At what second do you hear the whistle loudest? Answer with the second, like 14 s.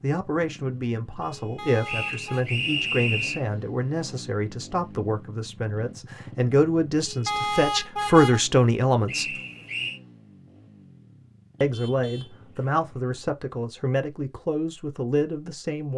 3 s.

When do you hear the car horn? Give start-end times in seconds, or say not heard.
1.6-2.5, 7.2-8.4, 11.6-12.7.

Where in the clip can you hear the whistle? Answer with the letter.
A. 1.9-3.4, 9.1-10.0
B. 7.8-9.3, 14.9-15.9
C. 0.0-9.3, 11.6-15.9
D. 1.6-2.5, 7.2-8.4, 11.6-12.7
A.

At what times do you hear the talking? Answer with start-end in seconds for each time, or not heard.
0.0-9.3, 11.6-15.9.